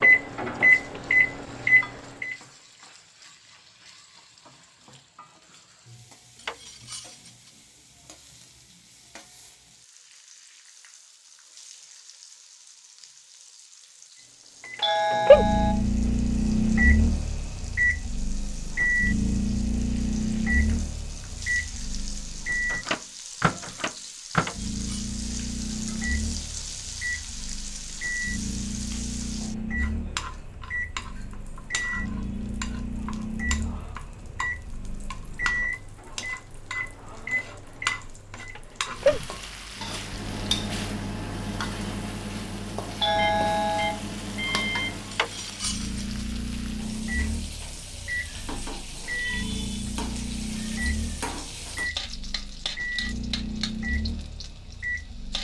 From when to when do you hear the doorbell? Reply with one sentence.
You can hear the doorbell from 14.8 to 15.8 s and from 43.0 to 44.0 s.